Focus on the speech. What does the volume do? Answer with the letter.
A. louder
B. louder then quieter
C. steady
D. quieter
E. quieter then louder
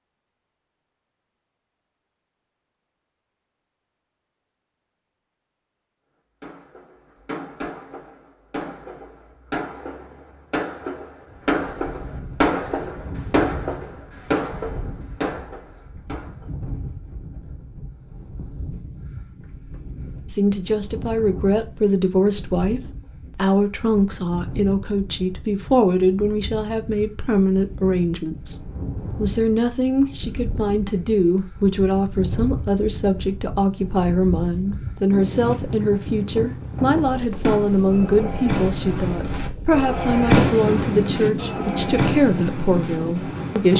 C.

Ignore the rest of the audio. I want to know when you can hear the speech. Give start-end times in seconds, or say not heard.
20.3-43.7.